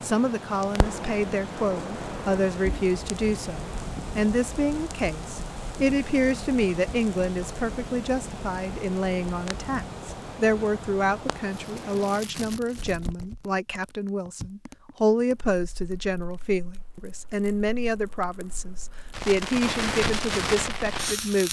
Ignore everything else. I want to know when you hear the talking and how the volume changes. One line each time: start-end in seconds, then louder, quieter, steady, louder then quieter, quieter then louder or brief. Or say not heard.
0.0-21.4 steady.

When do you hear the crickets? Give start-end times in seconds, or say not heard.
not heard.